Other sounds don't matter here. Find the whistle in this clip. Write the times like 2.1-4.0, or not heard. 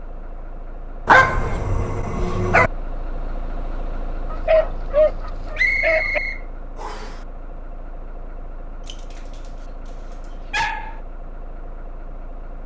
5.5-7.2.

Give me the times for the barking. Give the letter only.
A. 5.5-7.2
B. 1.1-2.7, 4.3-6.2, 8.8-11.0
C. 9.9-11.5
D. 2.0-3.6
B.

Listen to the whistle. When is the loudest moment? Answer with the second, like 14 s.
6 s.